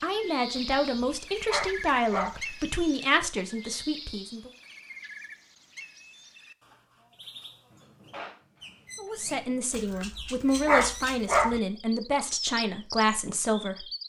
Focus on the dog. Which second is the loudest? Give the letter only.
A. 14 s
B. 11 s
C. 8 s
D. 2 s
B.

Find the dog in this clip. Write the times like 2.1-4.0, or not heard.
0.6-2.4, 9.7-11.6.